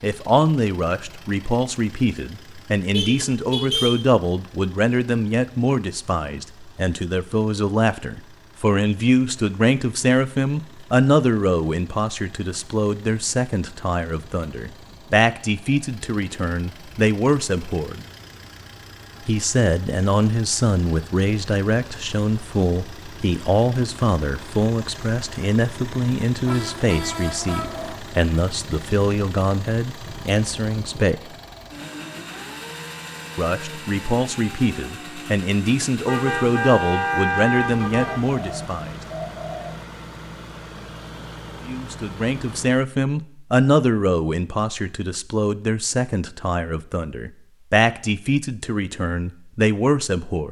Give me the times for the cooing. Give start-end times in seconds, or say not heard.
38.2-39.9.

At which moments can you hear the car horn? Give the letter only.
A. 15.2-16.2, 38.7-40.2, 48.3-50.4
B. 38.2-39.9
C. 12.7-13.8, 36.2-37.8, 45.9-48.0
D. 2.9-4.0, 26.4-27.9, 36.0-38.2
D.